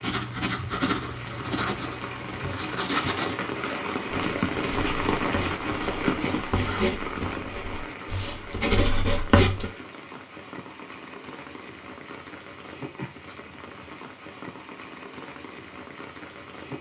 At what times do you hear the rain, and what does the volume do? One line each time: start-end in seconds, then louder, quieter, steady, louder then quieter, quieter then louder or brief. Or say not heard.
0.1-16.7 louder then quieter.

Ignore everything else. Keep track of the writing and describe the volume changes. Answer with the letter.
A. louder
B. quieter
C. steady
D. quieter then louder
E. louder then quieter
D.